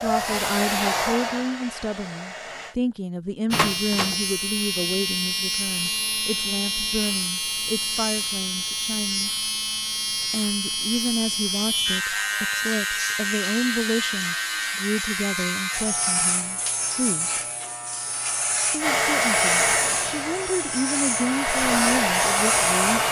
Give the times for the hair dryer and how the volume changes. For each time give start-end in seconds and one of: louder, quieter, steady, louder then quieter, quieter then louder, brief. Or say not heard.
0.0-2.8 brief
18.8-23.0 quieter then louder.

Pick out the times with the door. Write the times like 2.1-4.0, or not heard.
3.5-4.2.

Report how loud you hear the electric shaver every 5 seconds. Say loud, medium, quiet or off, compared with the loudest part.
loud, loud, loud, loud, medium.